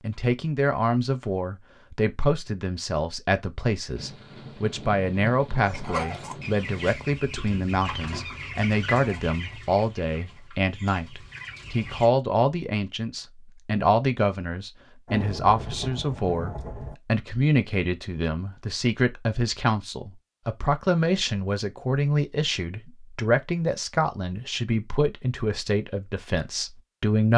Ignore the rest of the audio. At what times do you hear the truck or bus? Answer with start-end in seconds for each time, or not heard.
not heard.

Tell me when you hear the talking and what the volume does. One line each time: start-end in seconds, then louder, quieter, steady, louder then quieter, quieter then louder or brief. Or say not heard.
0.0-27.3 steady.